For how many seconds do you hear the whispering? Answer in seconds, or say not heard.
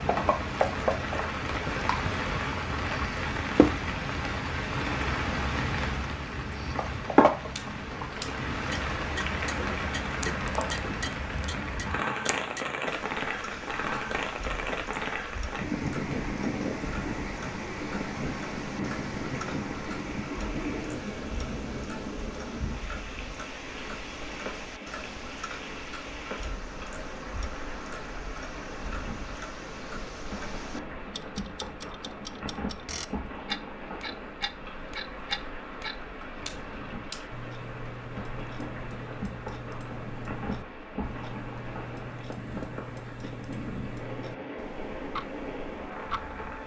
not heard.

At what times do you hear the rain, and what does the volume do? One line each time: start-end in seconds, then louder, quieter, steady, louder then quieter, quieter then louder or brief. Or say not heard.
0.0-46.6 quieter.